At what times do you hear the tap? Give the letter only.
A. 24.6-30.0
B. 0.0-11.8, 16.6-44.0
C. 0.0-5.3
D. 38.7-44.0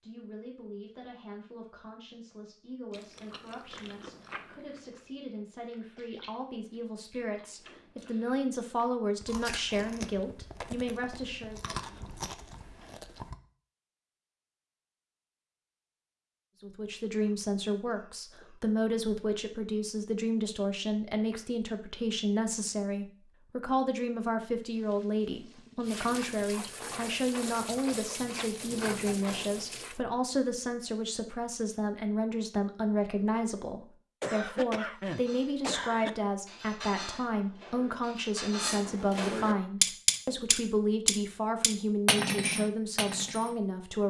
A.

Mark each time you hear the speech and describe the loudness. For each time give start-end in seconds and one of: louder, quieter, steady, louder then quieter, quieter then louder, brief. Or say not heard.
0.0-11.8 louder
16.6-44.0 steady.